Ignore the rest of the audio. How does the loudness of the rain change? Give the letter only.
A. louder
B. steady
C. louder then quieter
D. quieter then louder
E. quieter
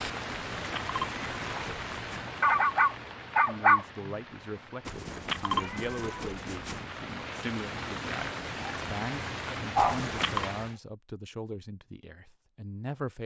D.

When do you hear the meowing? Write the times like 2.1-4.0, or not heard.
0.2-2.3, 4.8-6.8, 9.8-10.4.